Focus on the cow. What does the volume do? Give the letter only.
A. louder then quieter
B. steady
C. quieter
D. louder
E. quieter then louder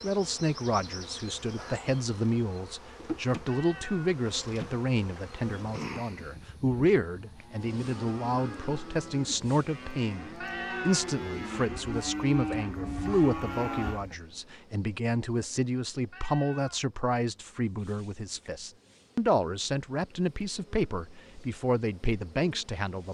D.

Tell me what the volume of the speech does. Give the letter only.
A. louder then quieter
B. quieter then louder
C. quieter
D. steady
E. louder
D.